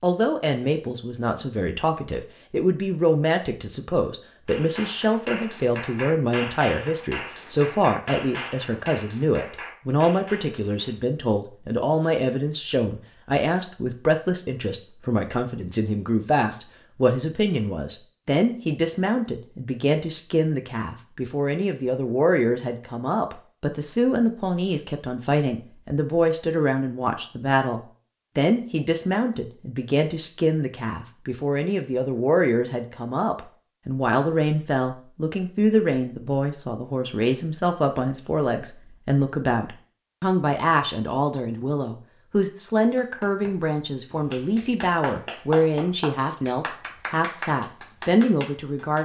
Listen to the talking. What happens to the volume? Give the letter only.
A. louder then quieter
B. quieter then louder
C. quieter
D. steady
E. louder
D.